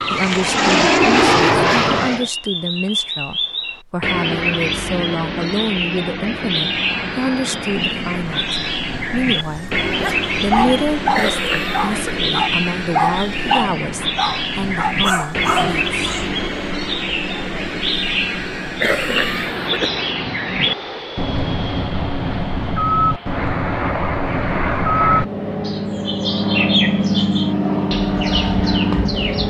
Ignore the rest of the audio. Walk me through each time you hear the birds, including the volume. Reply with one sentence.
You can hear the birds from 0.0 to 29.4 s, at a steady volume.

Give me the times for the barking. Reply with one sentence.
The barking can be heard from 9.4 to 16.3 s.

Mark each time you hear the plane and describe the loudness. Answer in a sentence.
The plane can be heard briefly from 0.0 to 2.3 s; and from 6.5 to 29.4 s, getting louder.